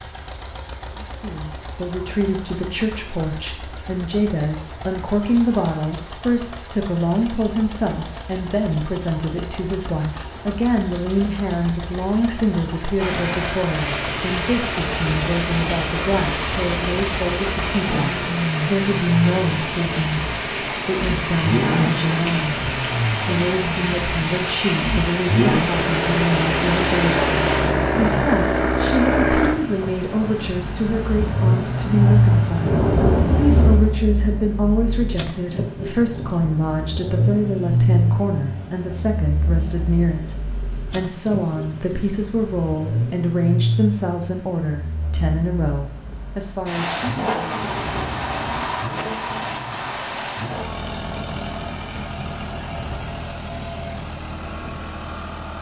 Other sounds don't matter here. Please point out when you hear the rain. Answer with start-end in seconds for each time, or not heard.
12.9-55.4.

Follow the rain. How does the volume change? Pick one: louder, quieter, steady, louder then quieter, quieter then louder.
quieter then louder.